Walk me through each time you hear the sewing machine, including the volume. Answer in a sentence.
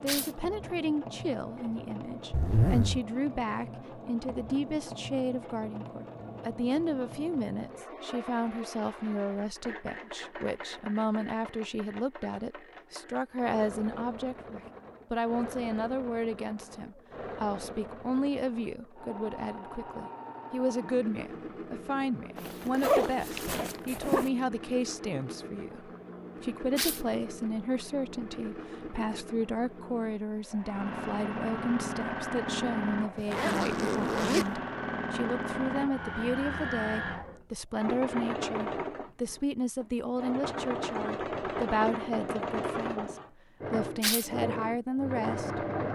You can hear the sewing machine from 0.0 to 45.9 s, getting louder.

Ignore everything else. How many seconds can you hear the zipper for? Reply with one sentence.
You can hear the zipper for 4 seconds altogether.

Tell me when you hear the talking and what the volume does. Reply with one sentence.
The talking can be heard from 0.0 to 45.9 s, at a steady volume.